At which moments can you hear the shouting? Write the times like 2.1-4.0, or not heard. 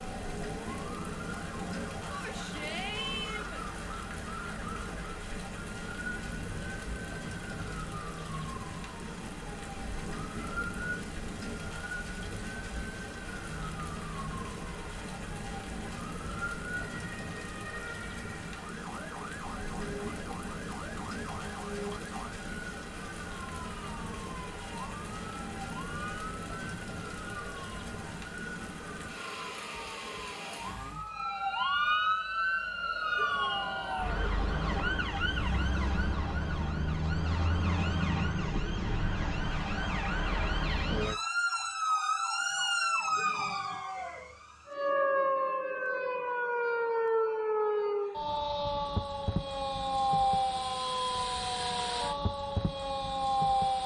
2.1-3.6, 33.1-34.1, 43.1-44.2.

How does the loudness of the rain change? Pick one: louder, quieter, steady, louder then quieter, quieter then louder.
steady.